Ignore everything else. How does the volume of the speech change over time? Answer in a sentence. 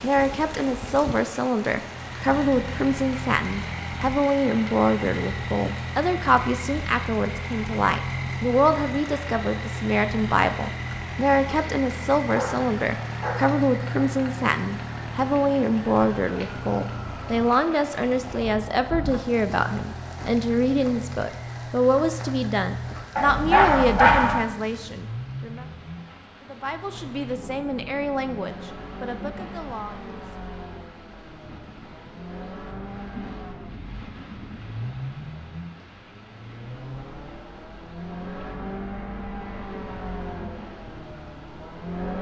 The loudness of the speech goes down.